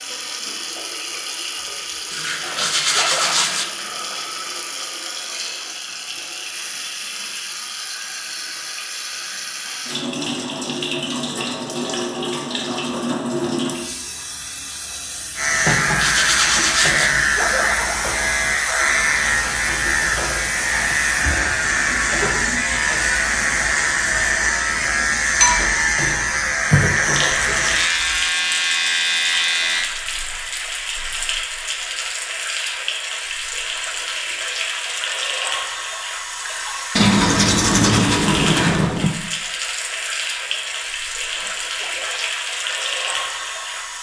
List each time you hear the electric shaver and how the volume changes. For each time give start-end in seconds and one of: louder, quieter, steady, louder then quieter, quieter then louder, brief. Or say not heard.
15.3-29.9 steady.